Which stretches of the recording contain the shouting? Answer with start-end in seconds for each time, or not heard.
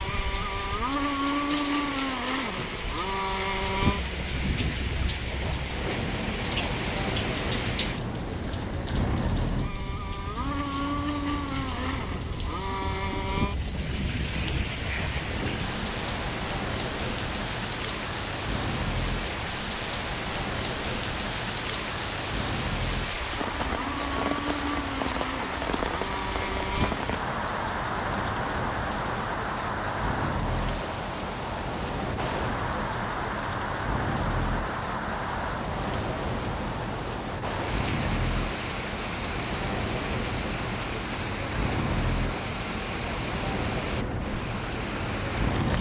not heard.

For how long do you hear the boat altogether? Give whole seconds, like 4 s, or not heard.
46 s.